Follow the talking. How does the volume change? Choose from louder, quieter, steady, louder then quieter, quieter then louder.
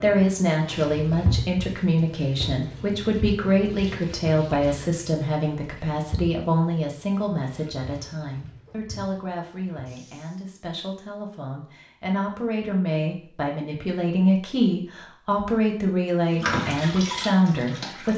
quieter then louder.